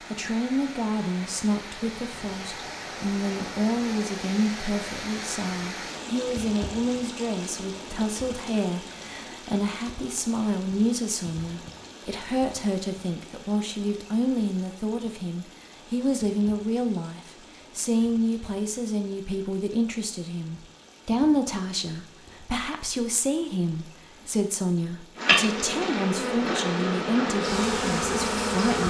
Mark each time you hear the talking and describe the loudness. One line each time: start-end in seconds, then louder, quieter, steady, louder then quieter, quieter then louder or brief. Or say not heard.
0.1-28.8 steady.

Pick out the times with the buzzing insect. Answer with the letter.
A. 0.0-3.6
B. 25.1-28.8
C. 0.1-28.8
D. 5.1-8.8
B.